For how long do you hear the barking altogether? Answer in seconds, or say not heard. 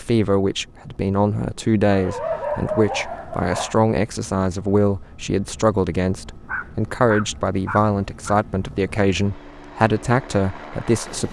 4 s.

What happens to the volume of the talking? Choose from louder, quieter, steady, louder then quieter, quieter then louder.
steady.